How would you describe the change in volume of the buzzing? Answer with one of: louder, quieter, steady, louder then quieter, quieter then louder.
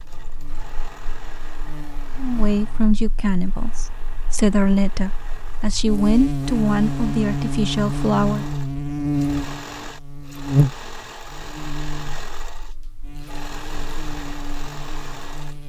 louder then quieter.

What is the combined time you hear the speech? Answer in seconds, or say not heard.
6 s.